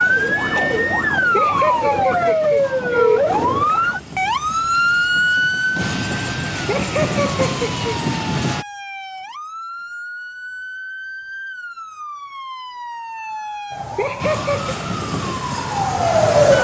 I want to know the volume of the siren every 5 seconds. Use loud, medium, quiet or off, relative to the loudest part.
loud, medium, quiet, loud.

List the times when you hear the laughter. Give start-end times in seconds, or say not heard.
1.3-3.4, 6.7-7.8, 13.9-14.8.